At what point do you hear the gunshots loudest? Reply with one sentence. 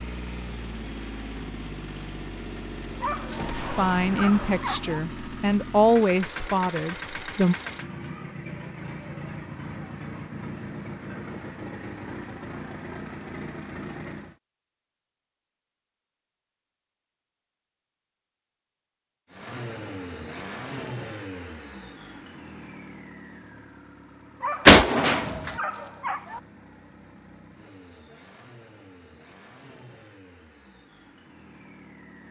The loudest moment of the gunshots is at 25 seconds.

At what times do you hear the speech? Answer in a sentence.
The speech can be heard from 3.8 to 7.5 s.